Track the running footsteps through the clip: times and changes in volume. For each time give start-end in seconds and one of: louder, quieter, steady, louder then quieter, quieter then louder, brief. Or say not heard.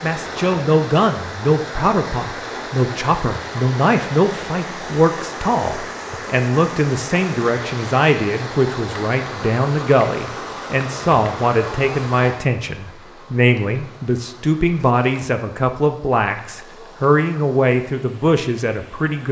not heard.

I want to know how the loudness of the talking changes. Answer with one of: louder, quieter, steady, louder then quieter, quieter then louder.
steady.